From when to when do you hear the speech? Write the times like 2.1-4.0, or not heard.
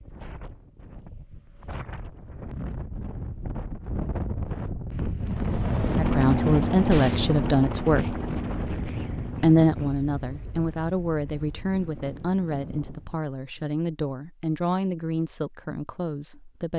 6.0-8.2, 9.4-16.7.